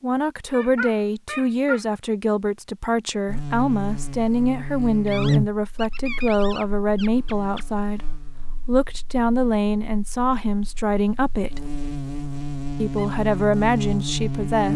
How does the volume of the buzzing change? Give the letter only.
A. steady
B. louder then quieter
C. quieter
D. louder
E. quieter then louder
E.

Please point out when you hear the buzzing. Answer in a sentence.
You can hear the buzzing from 3.2 to 14.7 s.